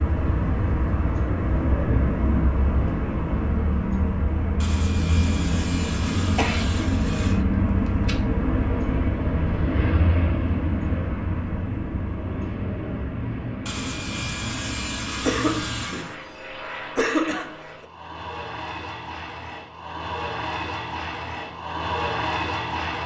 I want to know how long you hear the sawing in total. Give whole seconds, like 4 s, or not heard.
5 s.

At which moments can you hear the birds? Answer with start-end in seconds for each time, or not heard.
not heard.